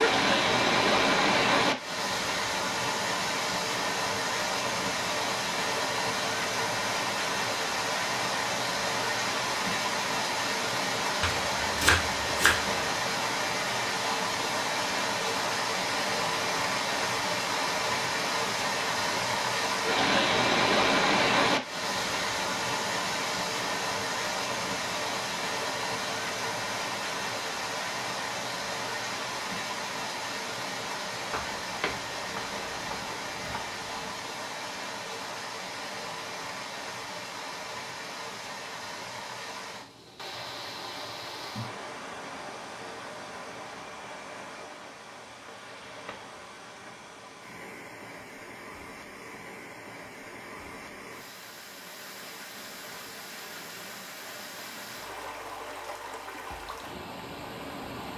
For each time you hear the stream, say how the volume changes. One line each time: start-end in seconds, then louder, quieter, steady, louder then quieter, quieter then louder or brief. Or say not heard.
0.0-58.1 quieter.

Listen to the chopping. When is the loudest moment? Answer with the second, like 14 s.
12 s.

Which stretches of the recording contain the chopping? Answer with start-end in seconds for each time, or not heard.
11.2-12.8, 31.3-34.1.